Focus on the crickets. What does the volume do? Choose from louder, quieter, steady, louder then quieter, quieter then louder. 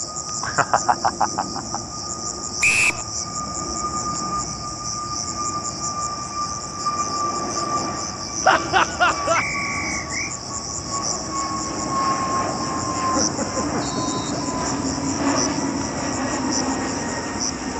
steady.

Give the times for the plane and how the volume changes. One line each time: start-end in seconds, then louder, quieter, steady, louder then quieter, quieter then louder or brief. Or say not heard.
0.0-17.7 louder.